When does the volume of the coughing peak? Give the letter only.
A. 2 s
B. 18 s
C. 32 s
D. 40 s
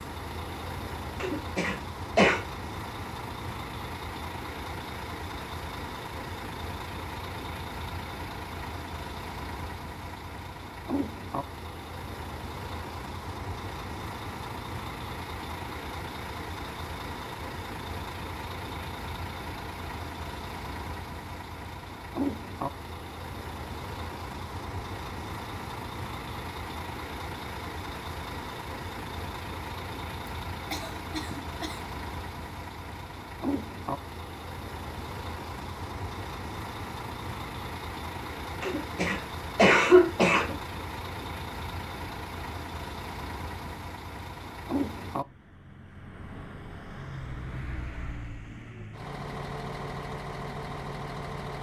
D.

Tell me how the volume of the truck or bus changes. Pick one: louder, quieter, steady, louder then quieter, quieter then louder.
steady.